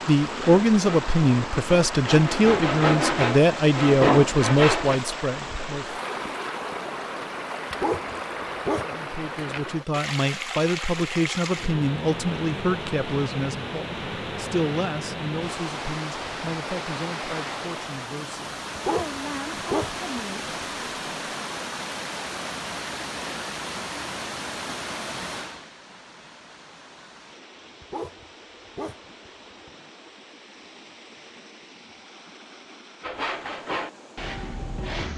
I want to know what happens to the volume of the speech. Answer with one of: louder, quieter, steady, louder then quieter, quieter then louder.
quieter.